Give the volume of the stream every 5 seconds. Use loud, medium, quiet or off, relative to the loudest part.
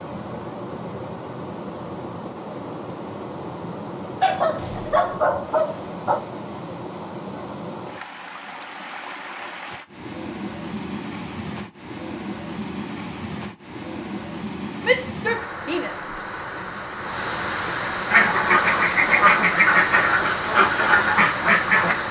medium, medium, medium, loud, loud.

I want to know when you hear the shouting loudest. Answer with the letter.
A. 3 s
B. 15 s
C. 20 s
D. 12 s
B.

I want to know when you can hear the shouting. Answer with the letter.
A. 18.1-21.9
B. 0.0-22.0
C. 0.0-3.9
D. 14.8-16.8
D.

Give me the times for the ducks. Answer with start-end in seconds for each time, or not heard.
18.1-21.9.